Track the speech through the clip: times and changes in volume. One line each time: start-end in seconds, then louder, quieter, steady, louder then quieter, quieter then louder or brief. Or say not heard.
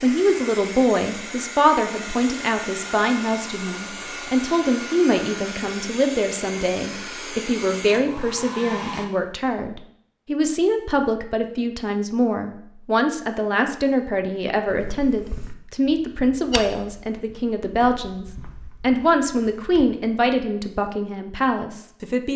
0.0-22.3 steady.